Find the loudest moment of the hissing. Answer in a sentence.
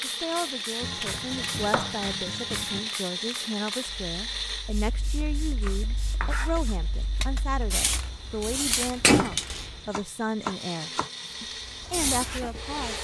The loudest moment of the hissing is at 9 seconds.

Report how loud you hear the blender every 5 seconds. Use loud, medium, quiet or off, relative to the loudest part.
loud, quiet, medium.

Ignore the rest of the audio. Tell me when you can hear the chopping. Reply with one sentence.
The chopping can be heard from 0.8 to 2.8 s, from 5.6 to 6.8 s and from 9.2 to 11.1 s.